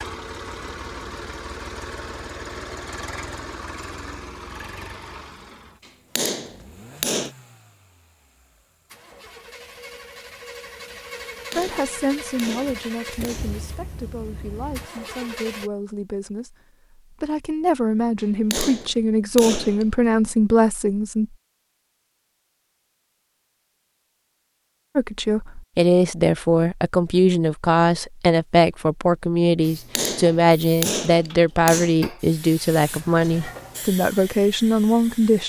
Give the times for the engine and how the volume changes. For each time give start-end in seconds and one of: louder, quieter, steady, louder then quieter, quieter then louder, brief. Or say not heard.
0.0-15.7 quieter then louder.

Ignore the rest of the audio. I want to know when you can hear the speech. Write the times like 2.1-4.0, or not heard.
11.6-21.2, 24.9-35.4.